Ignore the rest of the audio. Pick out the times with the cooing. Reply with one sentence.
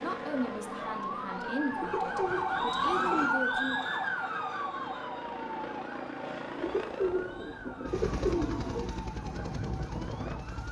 You can hear the cooing from 1.8 to 3.2 s and from 6.5 to 8.9 s.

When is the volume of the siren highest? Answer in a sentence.
The loudest moment of the siren is at 3 seconds.